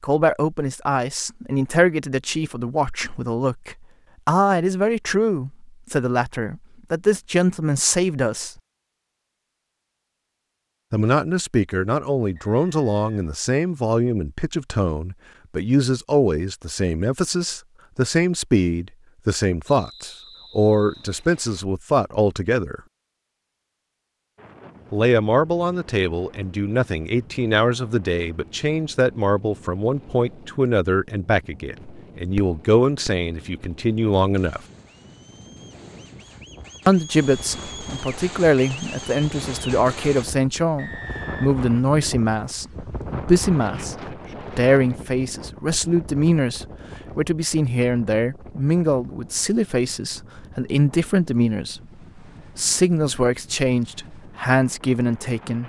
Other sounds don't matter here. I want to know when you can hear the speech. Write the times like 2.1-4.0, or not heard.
0.0-8.5, 10.9-22.8, 24.9-34.6, 36.9-51.8, 52.5-55.6.